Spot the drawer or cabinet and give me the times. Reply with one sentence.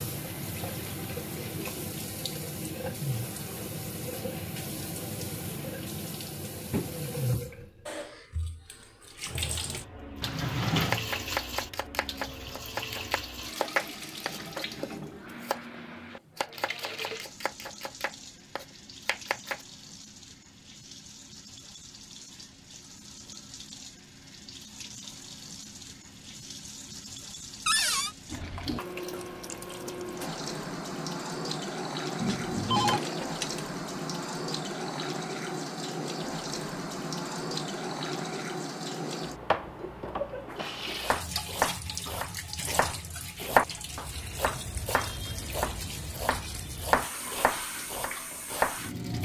The drawer or cabinet can be heard from 10.2 to 11.1 s, from 27.6 to 28.1 s and from 32.9 to 33.6 s.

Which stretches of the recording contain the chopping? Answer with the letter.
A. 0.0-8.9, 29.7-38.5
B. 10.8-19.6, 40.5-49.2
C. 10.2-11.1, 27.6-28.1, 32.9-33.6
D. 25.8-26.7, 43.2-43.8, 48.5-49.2
B.